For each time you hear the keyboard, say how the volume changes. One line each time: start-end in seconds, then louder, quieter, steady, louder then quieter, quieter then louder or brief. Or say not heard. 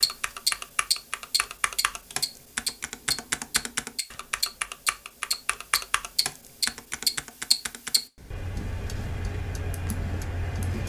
0.0-10.8 quieter.